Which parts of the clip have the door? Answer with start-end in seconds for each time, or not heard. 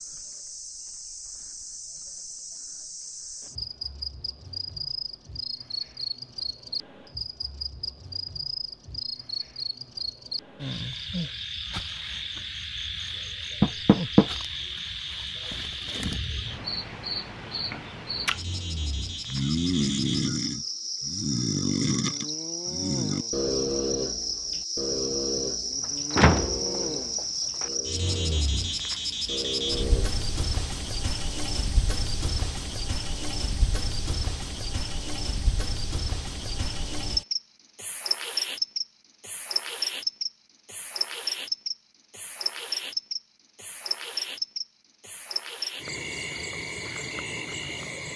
13.6-14.2, 26.1-27.7.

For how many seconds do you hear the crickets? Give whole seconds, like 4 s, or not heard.
48 s.